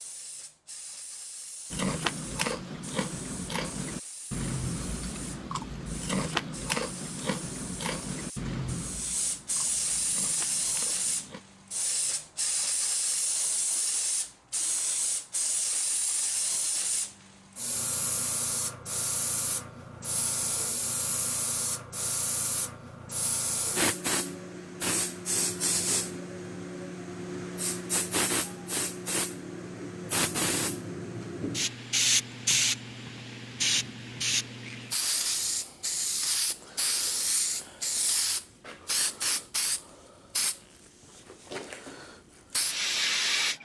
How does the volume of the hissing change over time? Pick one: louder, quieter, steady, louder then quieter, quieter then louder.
louder.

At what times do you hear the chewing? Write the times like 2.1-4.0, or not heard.
1.7-11.4.